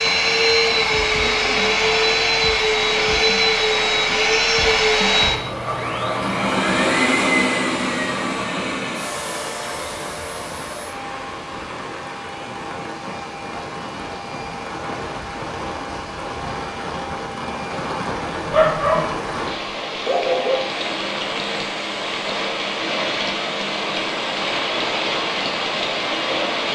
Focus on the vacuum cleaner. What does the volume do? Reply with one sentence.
The loudness of the vacuum cleaner goes down.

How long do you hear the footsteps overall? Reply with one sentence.
The footsteps can't be heard in this clip.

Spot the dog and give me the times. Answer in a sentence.
The dog can be heard from 18.4 to 19.3 s and from 20.1 to 20.6 s.